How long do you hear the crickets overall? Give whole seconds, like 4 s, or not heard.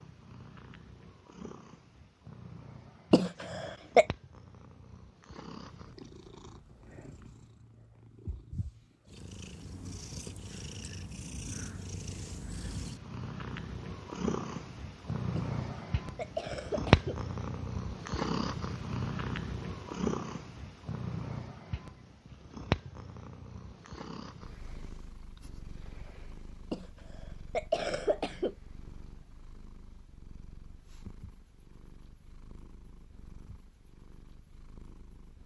not heard.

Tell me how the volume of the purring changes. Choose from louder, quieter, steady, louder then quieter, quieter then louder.
louder then quieter.